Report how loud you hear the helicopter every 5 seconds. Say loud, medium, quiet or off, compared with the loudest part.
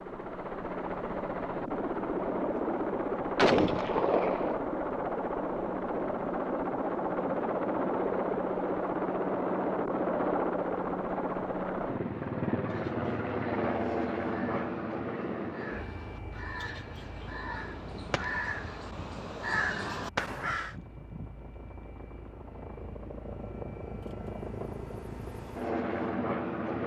loud, loud, loud, medium, quiet, loud.